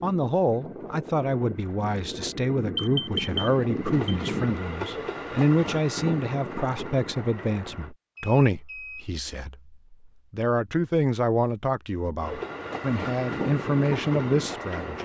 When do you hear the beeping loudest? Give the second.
3 s.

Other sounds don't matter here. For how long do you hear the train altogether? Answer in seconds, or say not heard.
11 s.